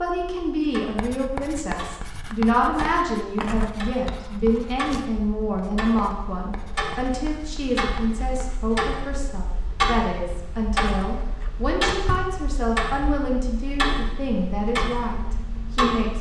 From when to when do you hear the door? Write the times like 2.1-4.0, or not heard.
3.4-3.9, 10.8-12.3.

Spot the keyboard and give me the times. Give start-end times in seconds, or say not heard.
not heard.